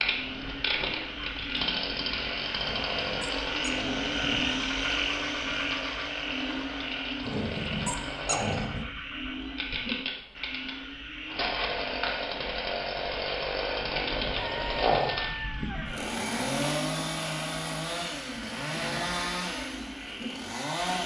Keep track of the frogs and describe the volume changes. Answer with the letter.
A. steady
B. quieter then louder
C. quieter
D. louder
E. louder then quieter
C.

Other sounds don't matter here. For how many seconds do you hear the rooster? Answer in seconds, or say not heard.
2 s.